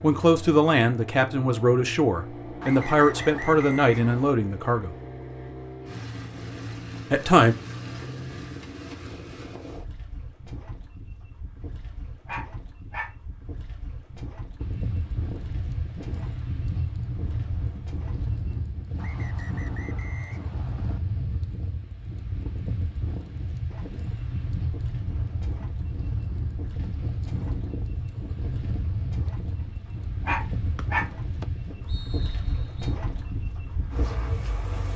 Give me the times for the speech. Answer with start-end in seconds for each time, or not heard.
0.0-5.0, 7.1-7.5.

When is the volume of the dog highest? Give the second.
31 s.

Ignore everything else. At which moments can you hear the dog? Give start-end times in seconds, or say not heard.
11.6-13.2, 29.6-31.1.